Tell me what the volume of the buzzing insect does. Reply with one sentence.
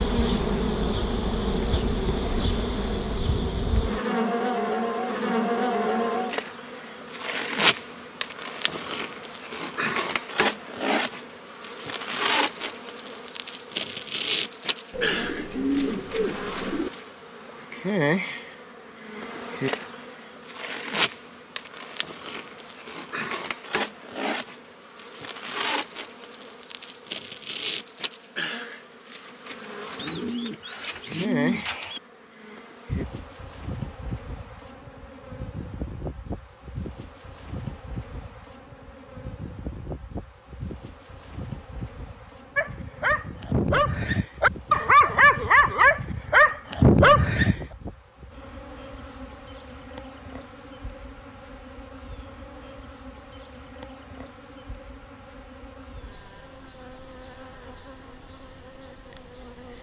The loudness of the buzzing insect goes down.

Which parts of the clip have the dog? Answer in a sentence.
The dog can be heard from 42.5 to 47.5 s.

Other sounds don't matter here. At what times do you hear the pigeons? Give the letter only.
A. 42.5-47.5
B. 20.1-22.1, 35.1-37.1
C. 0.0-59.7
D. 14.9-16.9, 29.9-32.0
D.